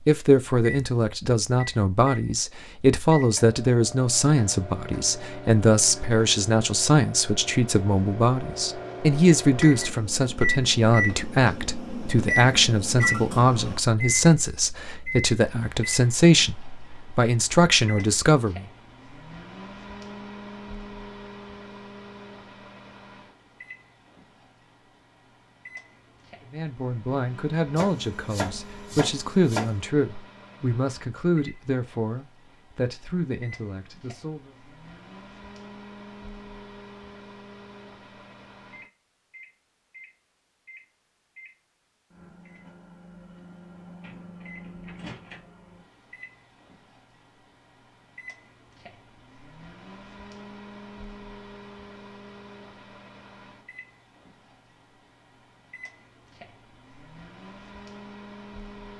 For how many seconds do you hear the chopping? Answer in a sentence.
You can hear the chopping for 2 seconds altogether.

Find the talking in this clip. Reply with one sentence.
You can hear the talking from 0.1 to 18.6 s and from 26.5 to 34.5 s.